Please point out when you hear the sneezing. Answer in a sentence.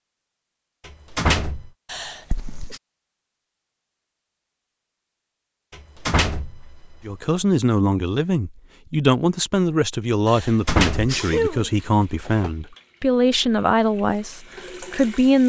The sneezing can be heard from 1.9 to 2.8 s and from 10.2 to 11.8 s.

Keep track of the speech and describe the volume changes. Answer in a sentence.
The loudness of the speech stays about the same.